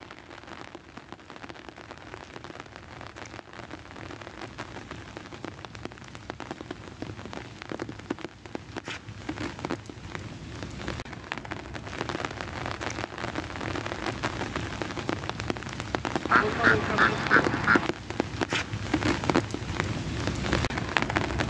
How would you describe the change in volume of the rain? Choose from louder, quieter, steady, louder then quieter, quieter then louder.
louder.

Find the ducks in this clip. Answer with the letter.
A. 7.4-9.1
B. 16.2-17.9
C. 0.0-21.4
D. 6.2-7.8
B.